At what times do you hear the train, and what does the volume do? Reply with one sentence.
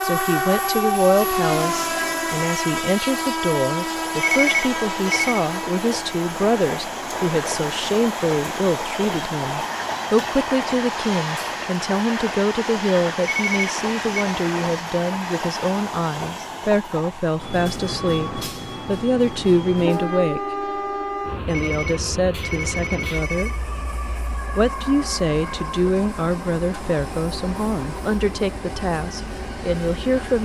The train can be heard from 0.0 to 30.4 s, getting quieter.